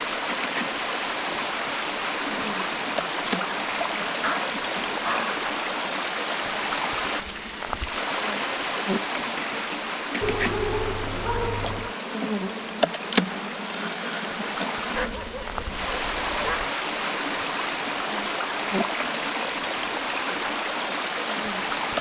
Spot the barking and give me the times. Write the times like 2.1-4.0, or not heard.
4.2-5.3, 10.2-11.9, 14.9-16.7.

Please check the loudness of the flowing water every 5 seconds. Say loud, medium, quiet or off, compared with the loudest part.
loud, loud, medium, loud, loud.